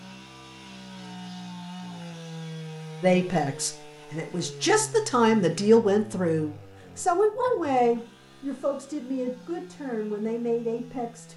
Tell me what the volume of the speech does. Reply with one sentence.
The loudness of the speech goes up, then down.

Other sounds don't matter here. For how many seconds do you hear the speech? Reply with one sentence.
You can hear the speech for 8 seconds altogether.